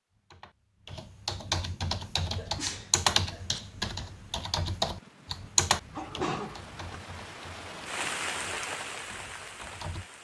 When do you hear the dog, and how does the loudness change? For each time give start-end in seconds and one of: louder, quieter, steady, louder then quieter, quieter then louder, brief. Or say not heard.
not heard.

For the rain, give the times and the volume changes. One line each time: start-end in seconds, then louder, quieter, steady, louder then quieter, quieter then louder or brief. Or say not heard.
1.9-10.2 louder.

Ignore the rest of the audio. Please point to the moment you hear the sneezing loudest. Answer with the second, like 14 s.
6 s.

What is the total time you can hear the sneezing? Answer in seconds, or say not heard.
2 s.